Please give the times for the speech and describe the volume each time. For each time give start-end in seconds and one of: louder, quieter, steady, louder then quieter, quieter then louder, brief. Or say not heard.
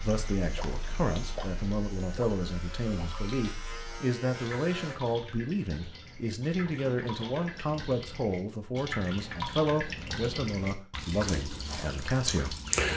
0.0-12.6 steady.